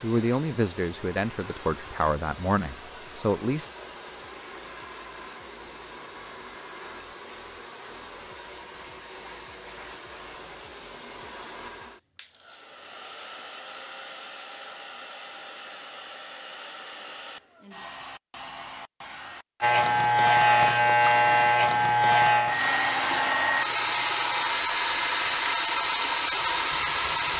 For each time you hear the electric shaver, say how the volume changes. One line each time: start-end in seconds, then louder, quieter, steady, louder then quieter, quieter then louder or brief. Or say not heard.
19.6-27.3 quieter.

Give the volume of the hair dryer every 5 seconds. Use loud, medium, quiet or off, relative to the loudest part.
quiet, quiet, quiet, quiet, loud, loud.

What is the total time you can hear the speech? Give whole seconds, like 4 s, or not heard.
4 s.